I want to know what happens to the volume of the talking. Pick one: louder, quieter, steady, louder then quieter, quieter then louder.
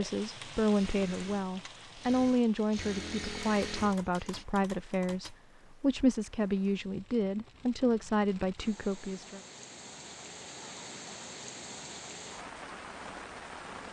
steady.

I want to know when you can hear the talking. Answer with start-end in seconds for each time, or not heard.
0.0-9.4.